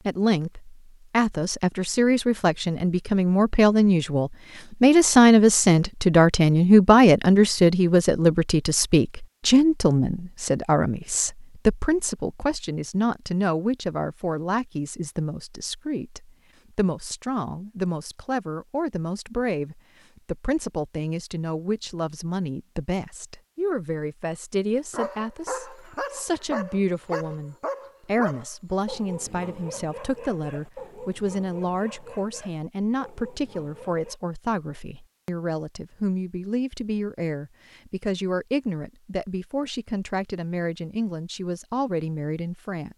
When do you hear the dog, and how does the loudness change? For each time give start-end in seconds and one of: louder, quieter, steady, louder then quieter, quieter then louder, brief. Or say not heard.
24.9-34.2 quieter.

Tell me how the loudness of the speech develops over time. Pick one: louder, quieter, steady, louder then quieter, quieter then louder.
quieter.